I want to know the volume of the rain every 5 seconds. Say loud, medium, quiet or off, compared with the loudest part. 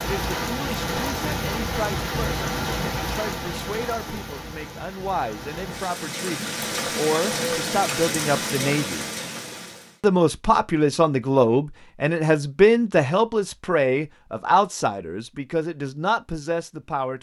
loud, loud, off, off.